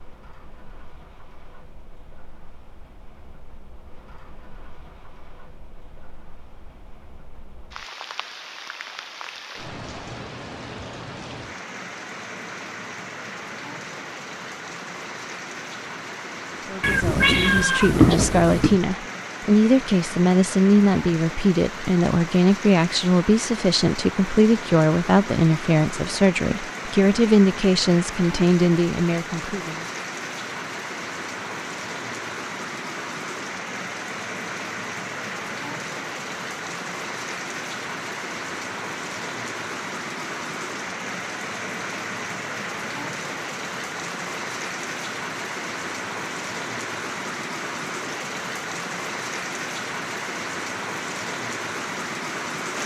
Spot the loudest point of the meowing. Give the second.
18 s.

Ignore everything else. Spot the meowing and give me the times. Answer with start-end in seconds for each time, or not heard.
16.8-18.8.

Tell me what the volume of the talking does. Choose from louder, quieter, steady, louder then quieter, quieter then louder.
steady.